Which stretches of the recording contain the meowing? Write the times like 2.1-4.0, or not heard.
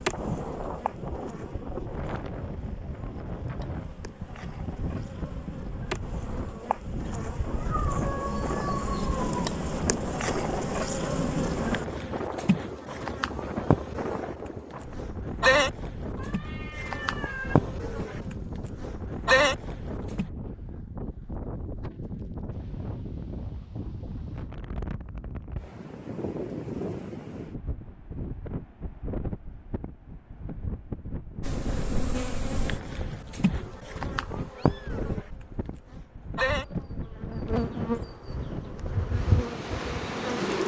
7.5-9.5, 16.1-17.6, 34.5-35.0.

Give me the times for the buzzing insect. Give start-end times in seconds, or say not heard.
0.0-20.3, 31.4-40.6.